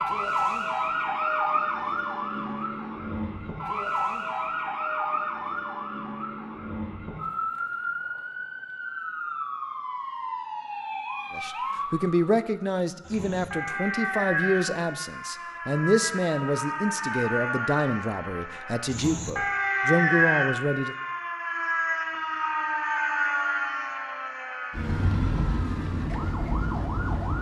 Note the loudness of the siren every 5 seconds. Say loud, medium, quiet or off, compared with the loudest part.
loud, medium, medium, loud, loud, loud.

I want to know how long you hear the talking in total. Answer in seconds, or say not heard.
10 s.